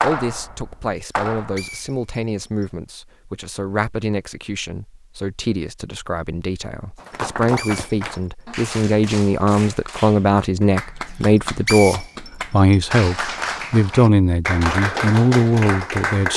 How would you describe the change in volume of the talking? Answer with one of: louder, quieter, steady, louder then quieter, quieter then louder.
louder.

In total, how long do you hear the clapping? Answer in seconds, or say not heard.
11 s.